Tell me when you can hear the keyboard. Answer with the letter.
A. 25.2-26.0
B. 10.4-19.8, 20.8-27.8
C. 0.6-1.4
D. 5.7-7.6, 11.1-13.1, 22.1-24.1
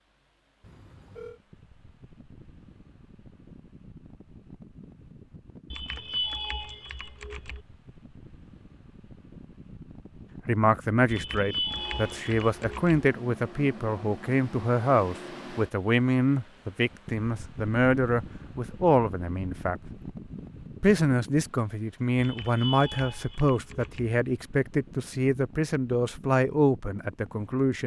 D.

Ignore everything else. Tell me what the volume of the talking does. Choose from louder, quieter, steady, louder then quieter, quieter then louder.
steady.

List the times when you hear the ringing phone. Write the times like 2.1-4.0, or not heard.
0.6-1.4.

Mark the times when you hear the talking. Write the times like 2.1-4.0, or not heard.
10.4-19.8, 20.8-27.8.